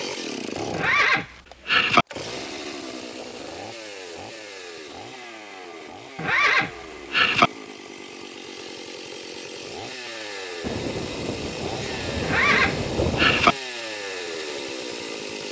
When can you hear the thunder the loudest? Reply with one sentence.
The loudest moment of the thunder is at 13 seconds.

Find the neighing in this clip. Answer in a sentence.
You can hear the neighing from 0.7 to 2.0 s, from 6.2 to 7.5 s and from 12.2 to 13.6 s.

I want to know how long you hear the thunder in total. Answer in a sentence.
The thunder can be heard for 3 seconds in total.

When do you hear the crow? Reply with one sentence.
You can't hear the crow here.